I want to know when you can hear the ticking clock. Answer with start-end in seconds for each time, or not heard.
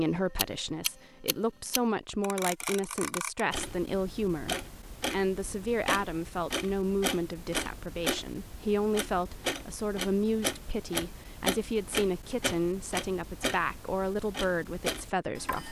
0.0-15.6.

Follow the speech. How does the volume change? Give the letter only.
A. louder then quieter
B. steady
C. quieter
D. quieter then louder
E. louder
B.